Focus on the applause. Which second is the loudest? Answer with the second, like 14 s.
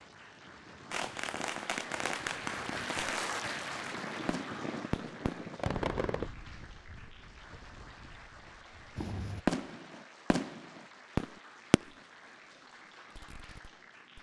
3 s.